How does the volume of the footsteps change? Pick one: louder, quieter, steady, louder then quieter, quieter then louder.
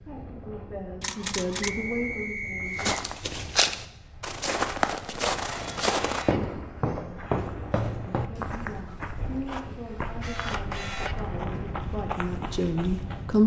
quieter.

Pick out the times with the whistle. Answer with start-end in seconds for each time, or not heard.
1.6-3.0.